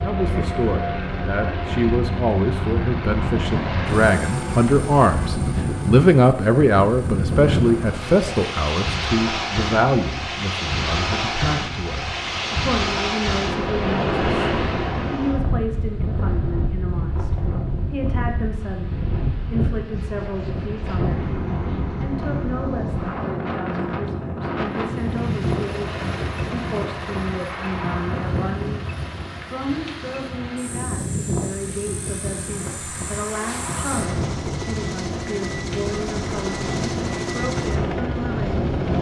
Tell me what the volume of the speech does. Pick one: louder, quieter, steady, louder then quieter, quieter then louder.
quieter.